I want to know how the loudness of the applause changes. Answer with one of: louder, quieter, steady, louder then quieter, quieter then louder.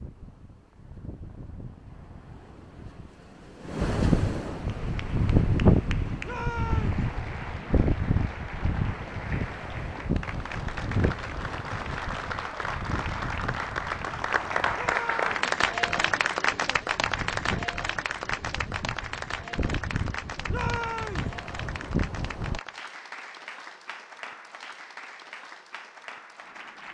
louder then quieter.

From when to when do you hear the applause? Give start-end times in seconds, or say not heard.
4.7-26.8.